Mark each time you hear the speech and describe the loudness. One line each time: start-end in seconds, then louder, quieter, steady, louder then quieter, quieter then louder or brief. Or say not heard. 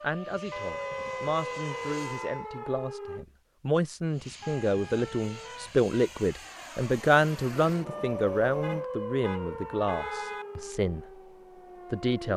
0.0-11.2 louder then quieter
11.9-12.3 brief.